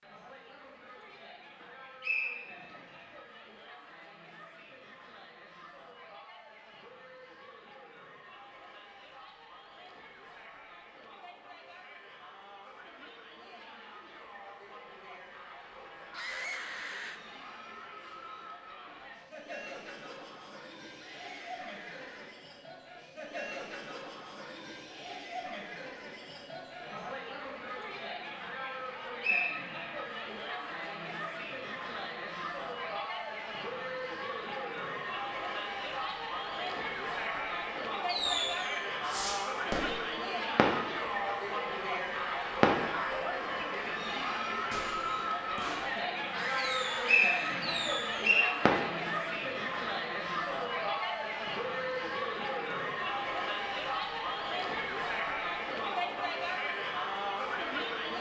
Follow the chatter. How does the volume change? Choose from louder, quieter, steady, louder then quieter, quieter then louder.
louder.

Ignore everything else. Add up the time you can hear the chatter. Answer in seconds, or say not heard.
58 s.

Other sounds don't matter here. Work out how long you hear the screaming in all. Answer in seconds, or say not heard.
4 s.